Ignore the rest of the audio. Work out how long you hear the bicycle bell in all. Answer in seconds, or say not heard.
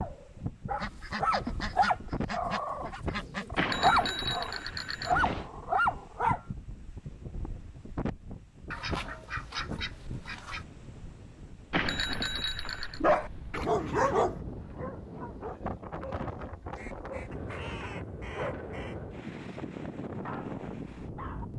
3 s.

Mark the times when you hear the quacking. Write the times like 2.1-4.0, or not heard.
0.8-3.5, 8.7-10.7, 16.8-18.9.